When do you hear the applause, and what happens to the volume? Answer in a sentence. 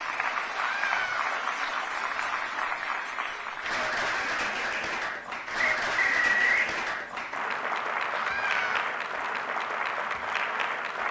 The applause can be heard from 0.0 to 11.0 s, at a steady volume.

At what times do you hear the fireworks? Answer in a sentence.
You can't hear the fireworks here.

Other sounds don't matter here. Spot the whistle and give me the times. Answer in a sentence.
The whistle can be heard from 5.6 to 6.7 s.